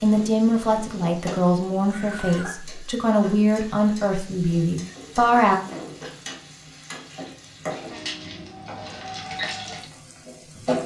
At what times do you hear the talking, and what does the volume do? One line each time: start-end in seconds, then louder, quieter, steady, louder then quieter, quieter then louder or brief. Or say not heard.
0.0-5.5 steady.